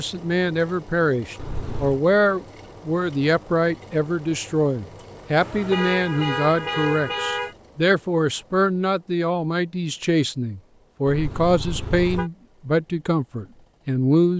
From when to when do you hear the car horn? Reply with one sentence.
The car horn can be heard from 1.4 to 2.0 s, from 5.4 to 7.5 s and from 11.1 to 12.3 s.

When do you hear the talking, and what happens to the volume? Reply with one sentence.
You can hear the talking from 0.0 to 14.3 s, at a steady volume.